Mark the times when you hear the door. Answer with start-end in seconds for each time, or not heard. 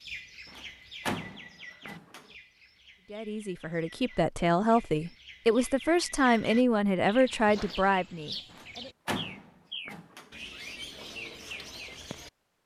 0.5-2.2, 8.5-10.3.